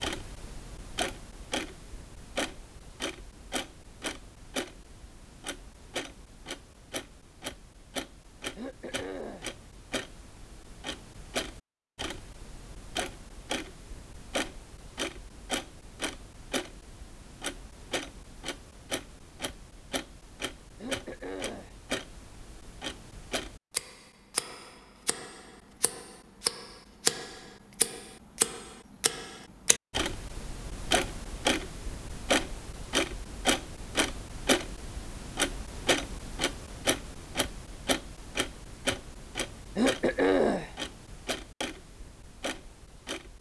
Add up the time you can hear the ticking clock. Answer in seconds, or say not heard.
43 s.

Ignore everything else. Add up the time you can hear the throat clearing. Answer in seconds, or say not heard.
3 s.